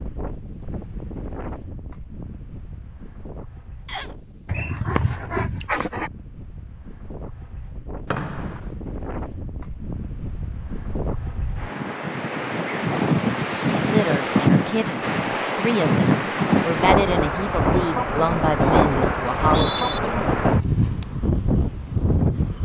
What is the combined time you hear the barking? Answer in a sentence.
The barking can be heard for 2 seconds in total.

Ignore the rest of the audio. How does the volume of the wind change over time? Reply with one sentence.
The volume of the wind goes up.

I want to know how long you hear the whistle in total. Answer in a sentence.
The whistle can be heard for 2 seconds in total.